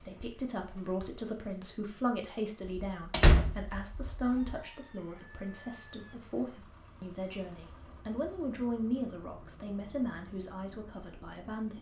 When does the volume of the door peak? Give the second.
3 s.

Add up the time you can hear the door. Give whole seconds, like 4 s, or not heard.
2 s.